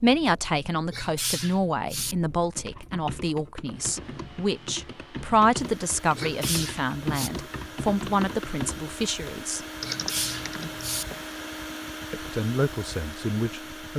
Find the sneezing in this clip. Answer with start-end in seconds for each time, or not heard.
0.9-2.1, 6.2-7.3, 9.8-11.1.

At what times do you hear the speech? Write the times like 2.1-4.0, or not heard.
0.0-9.7, 12.1-13.9.